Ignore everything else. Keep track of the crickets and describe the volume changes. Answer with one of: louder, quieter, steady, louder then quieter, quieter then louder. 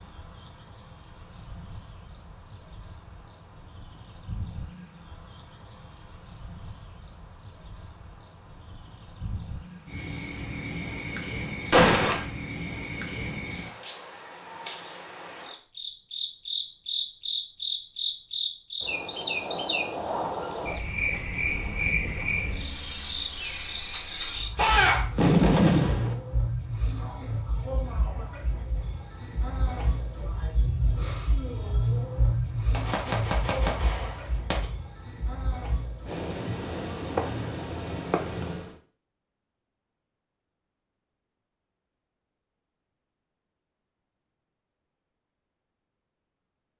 louder.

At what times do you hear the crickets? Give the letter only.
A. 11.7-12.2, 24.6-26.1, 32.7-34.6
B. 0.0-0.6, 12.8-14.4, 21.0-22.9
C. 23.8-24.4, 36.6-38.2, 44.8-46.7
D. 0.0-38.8
D.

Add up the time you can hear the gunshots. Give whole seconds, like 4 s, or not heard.
4 s.